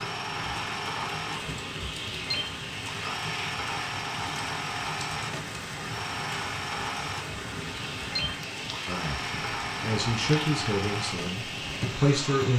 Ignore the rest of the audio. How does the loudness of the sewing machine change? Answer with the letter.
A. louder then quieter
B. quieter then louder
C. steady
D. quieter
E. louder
C.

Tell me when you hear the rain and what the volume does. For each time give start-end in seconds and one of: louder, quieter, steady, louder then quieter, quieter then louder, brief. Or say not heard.
0.0-12.5 steady.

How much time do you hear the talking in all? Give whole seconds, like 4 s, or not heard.
4 s.